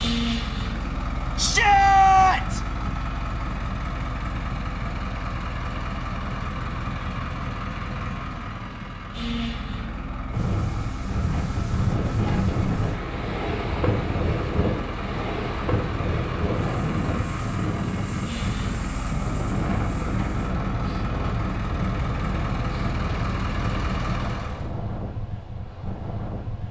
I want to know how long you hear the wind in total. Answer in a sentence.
You can hear the wind for 16 seconds altogether.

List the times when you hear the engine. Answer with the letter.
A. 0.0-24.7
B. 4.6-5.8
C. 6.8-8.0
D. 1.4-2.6
A.